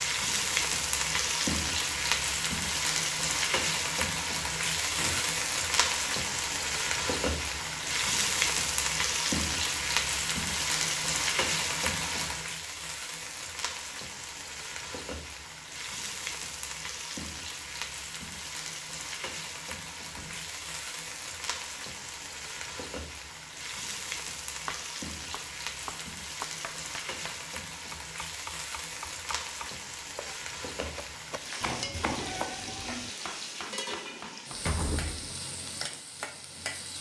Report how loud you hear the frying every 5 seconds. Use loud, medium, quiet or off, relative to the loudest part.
loud, loud, loud, medium, medium, medium, medium, medium.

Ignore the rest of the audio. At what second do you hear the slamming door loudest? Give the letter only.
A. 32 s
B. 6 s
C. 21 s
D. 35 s
D.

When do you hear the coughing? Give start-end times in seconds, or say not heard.
not heard.